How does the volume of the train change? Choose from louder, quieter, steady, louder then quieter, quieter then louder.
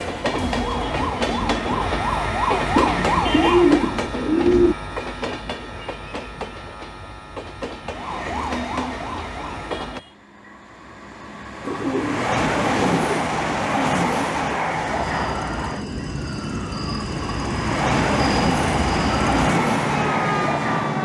quieter then louder.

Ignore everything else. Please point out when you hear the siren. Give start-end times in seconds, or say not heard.
0.0-4.0, 7.8-10.2, 14.8-21.0.